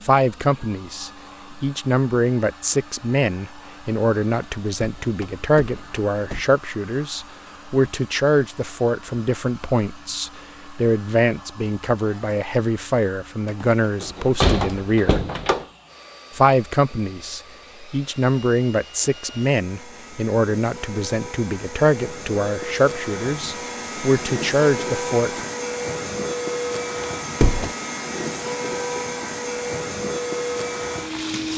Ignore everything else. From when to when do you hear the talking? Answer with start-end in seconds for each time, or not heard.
0.0-15.2, 16.4-25.4.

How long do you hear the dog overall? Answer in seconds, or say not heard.
not heard.